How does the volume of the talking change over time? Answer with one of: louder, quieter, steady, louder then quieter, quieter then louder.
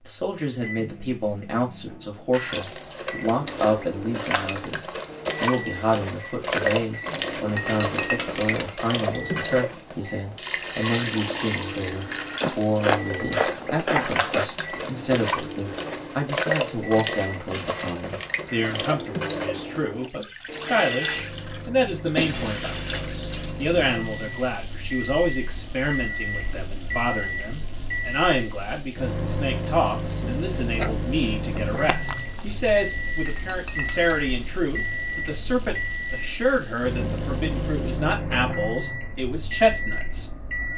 steady.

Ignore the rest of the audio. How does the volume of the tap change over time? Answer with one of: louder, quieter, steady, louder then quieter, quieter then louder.
quieter.